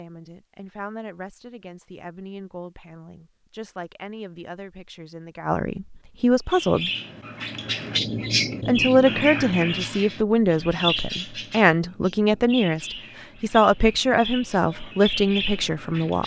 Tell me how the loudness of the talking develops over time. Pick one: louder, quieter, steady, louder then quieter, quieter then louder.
louder.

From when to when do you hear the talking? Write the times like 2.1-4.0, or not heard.
0.0-6.9, 8.7-16.2.